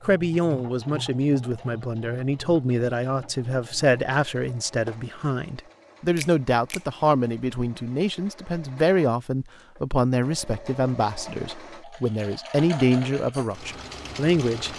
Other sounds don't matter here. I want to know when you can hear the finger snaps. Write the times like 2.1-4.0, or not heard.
6.2-6.8.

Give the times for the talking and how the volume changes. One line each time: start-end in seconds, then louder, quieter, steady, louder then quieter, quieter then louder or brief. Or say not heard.
0.0-14.7 steady.